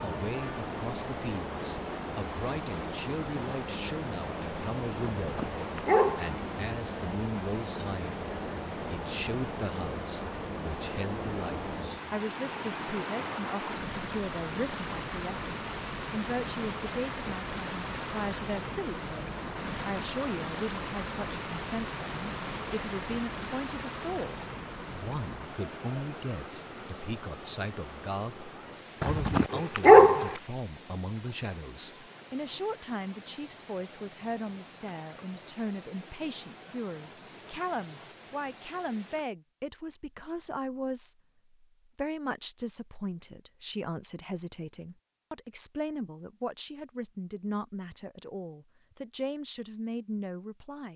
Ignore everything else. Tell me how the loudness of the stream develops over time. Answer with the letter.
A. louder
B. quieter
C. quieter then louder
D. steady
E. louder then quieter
B.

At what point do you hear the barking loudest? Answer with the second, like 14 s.
30 s.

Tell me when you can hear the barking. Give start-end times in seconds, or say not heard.
5.2-6.4, 29.0-30.4.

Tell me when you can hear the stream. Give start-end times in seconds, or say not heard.
0.0-39.3.